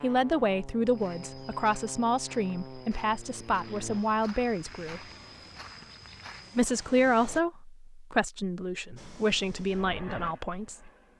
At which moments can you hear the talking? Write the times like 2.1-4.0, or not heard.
0.0-5.0, 6.5-10.9.